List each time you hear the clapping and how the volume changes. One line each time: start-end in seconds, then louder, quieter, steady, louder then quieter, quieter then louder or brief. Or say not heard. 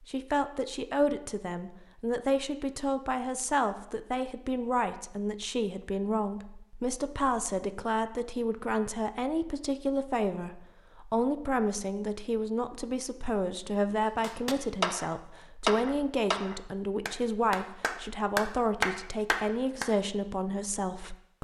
14.2-19.9 quieter then louder.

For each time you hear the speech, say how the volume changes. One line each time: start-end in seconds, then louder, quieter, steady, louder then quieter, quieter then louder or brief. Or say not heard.
0.1-21.3 steady.